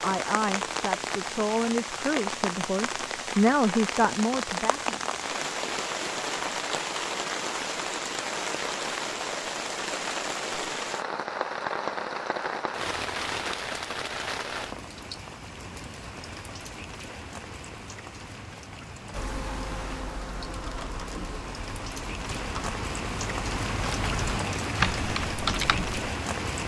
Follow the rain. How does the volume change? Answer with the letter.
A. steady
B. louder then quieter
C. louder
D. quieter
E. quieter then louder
E.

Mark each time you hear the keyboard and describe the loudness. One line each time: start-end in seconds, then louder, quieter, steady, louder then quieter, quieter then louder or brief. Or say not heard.
19.1-26.1 louder.